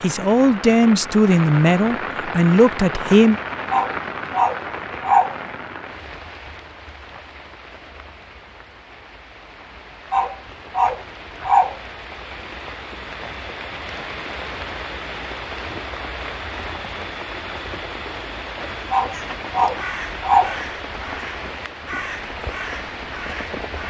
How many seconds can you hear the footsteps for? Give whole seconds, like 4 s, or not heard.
not heard.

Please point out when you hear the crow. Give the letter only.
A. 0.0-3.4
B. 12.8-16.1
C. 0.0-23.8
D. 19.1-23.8
D.